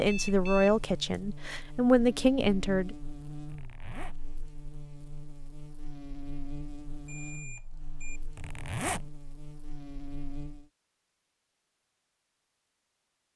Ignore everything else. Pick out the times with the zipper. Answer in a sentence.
The zipper can be heard from 3.5 to 4.2 s and from 8.3 to 9.1 s.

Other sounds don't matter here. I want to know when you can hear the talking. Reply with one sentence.
You can hear the talking from 0.0 to 3.0 s.